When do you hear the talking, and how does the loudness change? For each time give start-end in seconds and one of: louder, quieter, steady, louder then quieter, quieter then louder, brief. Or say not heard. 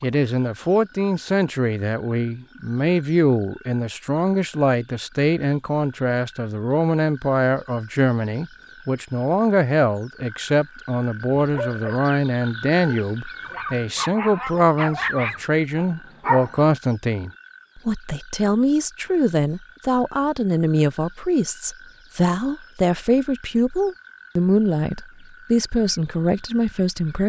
0.0-27.2 steady.